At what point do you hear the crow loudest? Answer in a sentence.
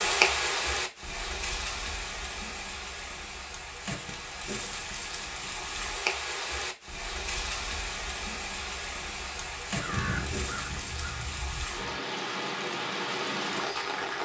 The loudest moment of the crow is at 10 seconds.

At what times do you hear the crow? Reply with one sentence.
You can hear the crow from 9.8 to 11.8 s.